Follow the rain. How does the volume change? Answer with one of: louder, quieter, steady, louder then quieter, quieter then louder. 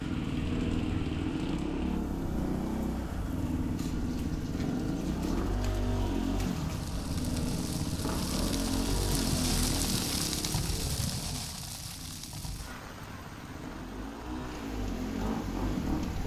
louder then quieter.